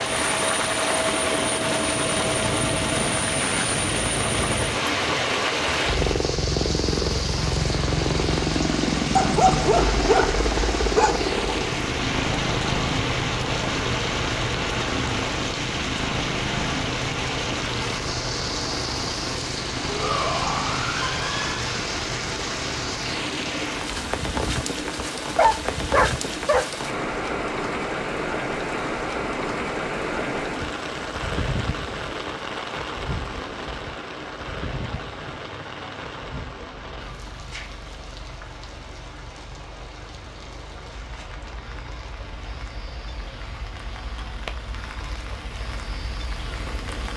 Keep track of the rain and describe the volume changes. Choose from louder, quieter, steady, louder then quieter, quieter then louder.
quieter.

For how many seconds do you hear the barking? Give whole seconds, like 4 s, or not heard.
3 s.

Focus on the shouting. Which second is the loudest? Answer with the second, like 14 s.
20 s.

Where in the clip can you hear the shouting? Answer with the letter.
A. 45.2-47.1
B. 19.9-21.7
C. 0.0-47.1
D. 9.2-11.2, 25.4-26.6
B.